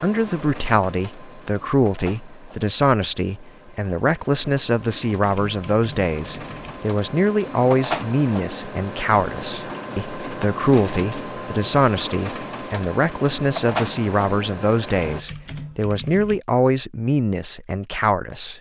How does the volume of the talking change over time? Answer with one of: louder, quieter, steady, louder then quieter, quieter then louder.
steady.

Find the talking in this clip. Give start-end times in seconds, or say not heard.
0.0-18.5.